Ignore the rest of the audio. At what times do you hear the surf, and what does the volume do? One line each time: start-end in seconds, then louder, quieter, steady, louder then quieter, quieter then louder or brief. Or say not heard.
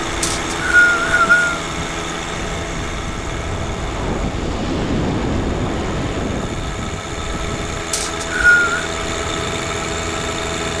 0.0-10.7 louder then quieter.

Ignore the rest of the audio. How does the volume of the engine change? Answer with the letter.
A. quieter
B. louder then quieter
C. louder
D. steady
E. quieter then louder
E.